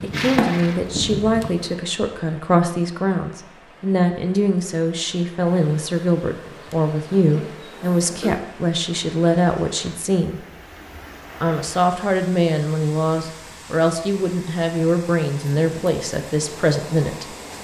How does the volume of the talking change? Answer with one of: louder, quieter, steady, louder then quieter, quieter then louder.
steady.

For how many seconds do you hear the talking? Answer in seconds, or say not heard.
16 s.